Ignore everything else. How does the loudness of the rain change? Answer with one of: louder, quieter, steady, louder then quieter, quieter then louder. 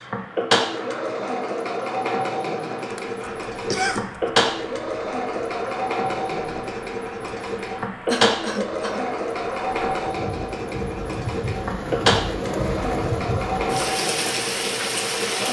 louder.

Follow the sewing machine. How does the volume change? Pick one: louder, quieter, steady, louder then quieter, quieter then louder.
steady.